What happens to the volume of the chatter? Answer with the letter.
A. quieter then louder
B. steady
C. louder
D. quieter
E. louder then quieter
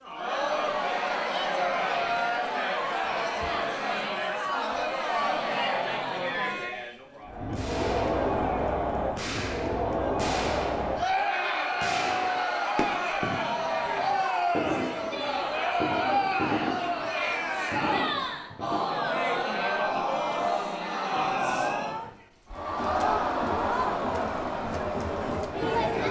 B.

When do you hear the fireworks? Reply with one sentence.
You can hear the fireworks from 7.5 to 18.9 s.